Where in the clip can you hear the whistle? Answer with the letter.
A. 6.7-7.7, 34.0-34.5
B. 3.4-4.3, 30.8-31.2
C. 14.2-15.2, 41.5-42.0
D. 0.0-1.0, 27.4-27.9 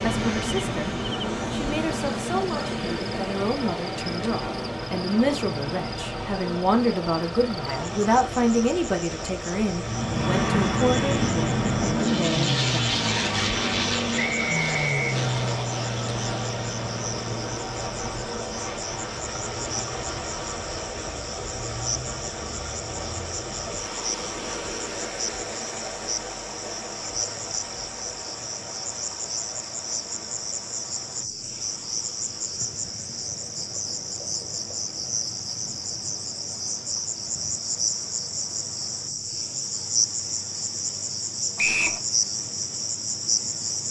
C.